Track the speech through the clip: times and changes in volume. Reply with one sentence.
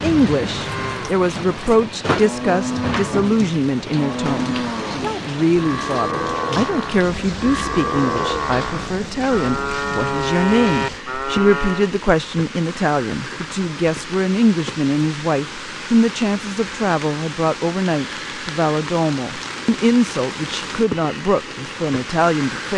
You can hear the speech from 0.0 to 22.7 s, at a steady volume.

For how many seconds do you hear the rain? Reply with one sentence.
The rain can be heard for 23 seconds in total.